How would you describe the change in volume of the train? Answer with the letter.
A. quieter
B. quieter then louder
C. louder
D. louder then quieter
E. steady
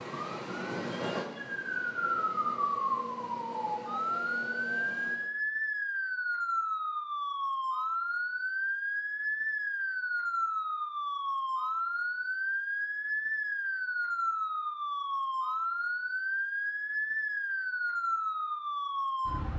A.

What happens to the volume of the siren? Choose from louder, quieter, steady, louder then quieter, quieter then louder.
steady.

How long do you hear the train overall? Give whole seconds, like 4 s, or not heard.
5 s.